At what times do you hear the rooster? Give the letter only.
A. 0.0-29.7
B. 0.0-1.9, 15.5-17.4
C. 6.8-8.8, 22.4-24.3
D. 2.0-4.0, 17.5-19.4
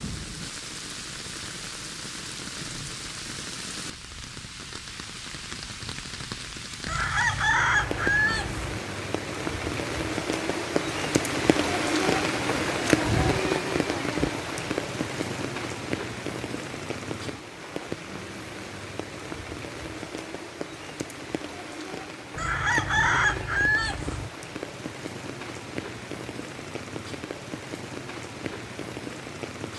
C.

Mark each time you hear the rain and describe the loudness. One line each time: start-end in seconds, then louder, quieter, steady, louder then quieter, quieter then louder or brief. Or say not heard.
0.0-29.7 louder then quieter.